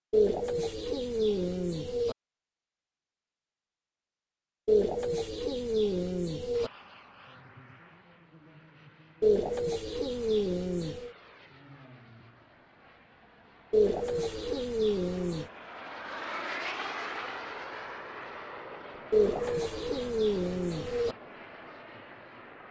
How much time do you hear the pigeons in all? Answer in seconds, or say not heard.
10 s.